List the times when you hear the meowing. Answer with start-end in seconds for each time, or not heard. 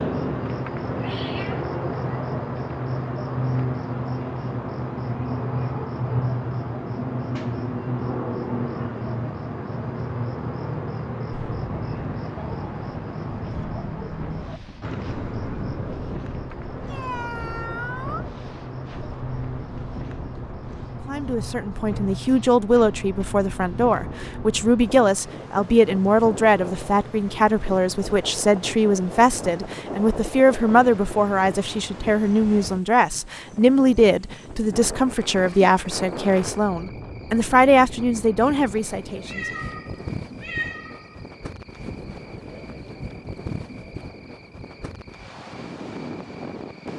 0.9-1.7, 16.9-18.2, 39.2-41.1.